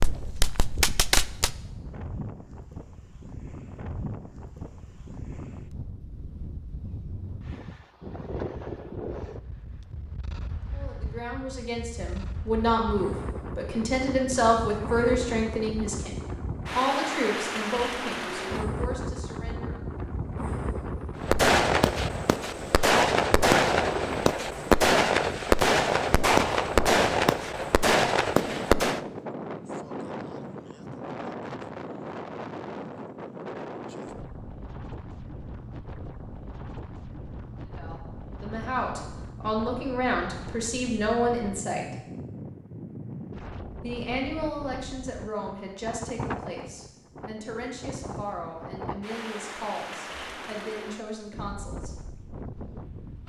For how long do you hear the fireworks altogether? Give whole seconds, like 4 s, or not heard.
9 s.